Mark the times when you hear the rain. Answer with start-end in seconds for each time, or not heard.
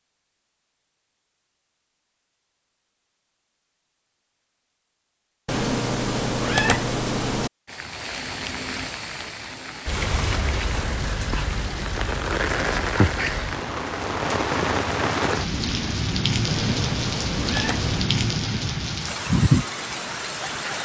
7.7-20.8.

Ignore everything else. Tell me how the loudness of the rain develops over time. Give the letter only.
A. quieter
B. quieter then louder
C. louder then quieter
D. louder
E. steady
D.